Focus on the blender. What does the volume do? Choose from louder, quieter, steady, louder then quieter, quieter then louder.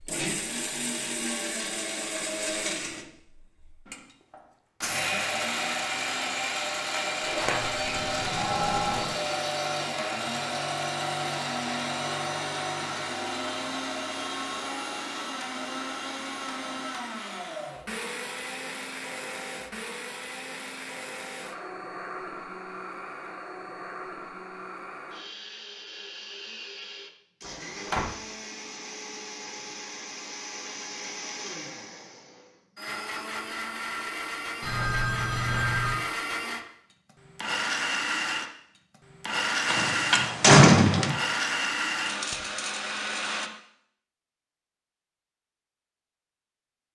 quieter then louder.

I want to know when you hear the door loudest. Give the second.
41 s.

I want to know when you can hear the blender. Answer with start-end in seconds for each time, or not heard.
0.0-43.5.